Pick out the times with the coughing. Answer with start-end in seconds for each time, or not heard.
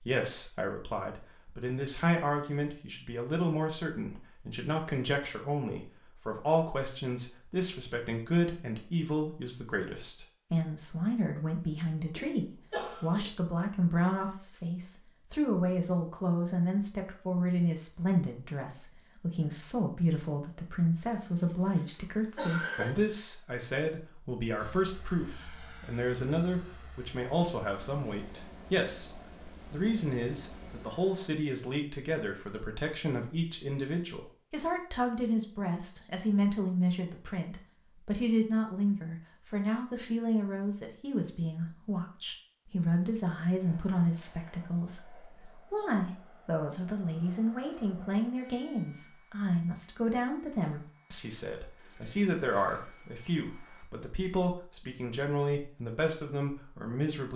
11.7-13.3, 21.2-22.9, 51.8-53.0.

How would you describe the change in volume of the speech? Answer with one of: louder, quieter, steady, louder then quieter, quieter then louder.
steady.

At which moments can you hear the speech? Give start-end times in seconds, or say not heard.
0.0-57.3.